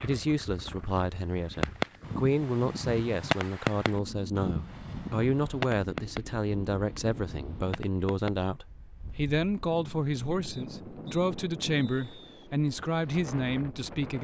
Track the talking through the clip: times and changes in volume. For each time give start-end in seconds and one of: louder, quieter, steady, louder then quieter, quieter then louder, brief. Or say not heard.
0.0-14.1 steady.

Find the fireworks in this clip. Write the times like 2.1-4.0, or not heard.
1.6-8.3.